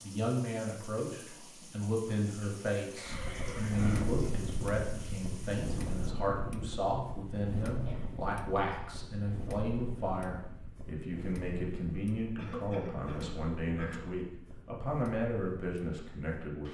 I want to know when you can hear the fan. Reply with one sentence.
The fan can be heard from 3.0 to 16.7 s.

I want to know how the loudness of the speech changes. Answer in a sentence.
The volume of the speech stays about the same.